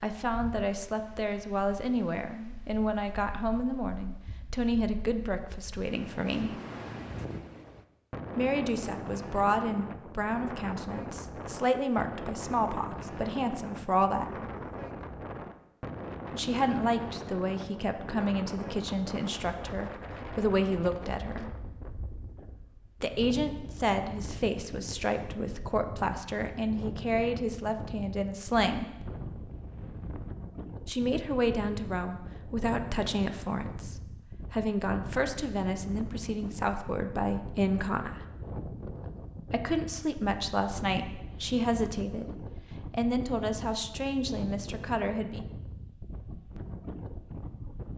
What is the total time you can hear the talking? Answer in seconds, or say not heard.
37 s.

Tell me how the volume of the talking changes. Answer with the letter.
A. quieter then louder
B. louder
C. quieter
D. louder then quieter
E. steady
E.